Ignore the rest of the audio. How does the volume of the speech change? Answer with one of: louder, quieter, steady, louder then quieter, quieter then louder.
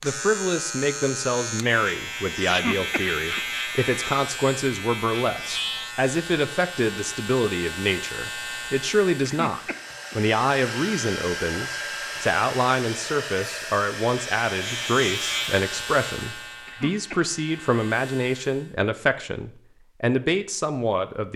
steady.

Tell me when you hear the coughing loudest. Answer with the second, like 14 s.
3 s.